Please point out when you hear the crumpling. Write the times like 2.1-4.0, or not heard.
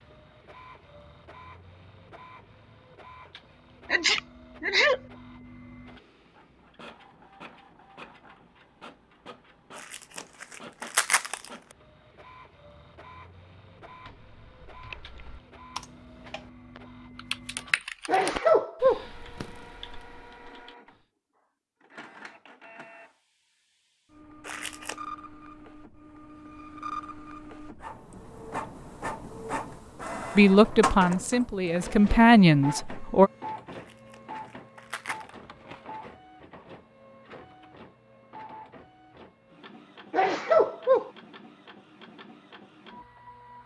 9.8-11.5, 24.4-24.9, 33.7-35.3.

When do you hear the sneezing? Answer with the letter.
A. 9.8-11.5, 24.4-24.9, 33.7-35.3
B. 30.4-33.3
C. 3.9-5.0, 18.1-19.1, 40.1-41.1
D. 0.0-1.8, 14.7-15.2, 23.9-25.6
C.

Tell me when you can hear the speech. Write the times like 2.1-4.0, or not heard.
30.4-33.3.